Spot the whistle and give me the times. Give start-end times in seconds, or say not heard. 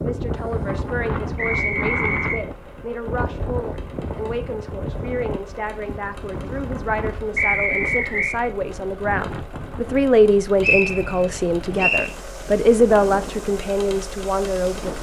1.4-2.4, 7.3-8.3, 10.6-12.1.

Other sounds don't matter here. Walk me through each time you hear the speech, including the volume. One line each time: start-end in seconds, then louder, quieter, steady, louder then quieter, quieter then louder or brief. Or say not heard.
0.0-14.9 louder.